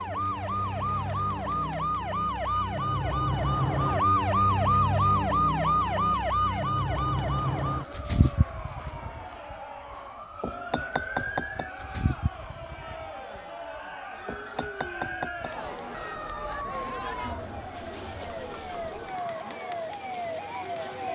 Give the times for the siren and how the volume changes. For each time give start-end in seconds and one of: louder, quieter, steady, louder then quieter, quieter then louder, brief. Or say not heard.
0.0-21.1 quieter.